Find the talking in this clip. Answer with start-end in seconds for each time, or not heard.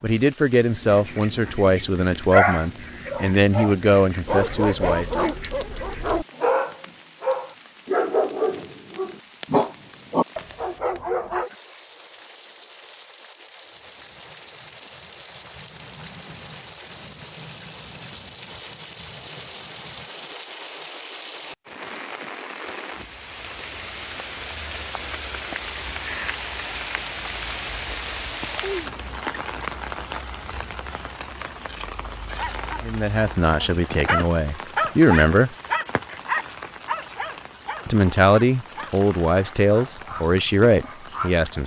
0.0-5.2, 32.8-35.5, 37.9-41.6.